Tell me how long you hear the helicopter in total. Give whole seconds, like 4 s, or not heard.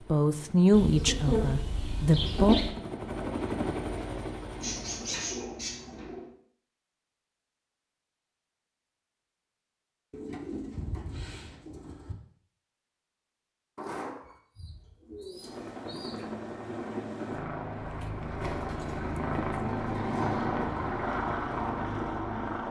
13 s.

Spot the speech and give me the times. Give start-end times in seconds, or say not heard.
0.1-2.5.